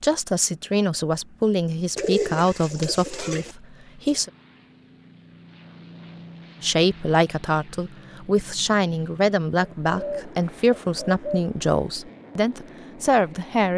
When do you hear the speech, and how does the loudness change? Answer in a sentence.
The speech can be heard from 0.0 to 4.3 s, getting quieter; and from 6.6 to 13.7 s, at a steady volume.